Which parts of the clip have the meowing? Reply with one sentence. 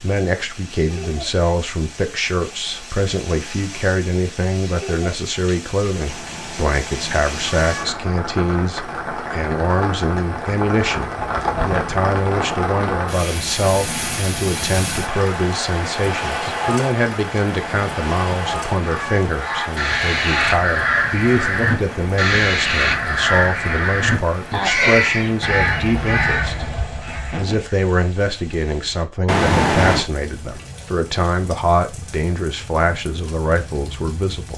You can hear the meowing from 6.1 to 8.1 s, from 17.5 to 19.2 s and from 29.2 to 30.1 s.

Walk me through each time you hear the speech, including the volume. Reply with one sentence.
The speech can be heard from 0.0 to 34.5 s, at a steady volume.